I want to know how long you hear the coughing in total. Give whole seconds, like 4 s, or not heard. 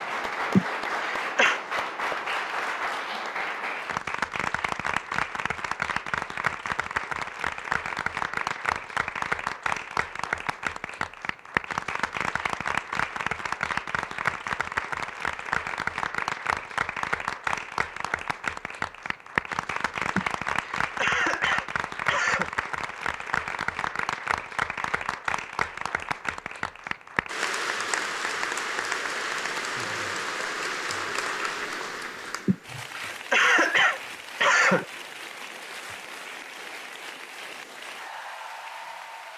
6 s.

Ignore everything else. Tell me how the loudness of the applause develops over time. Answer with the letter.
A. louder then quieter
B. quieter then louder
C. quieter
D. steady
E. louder
C.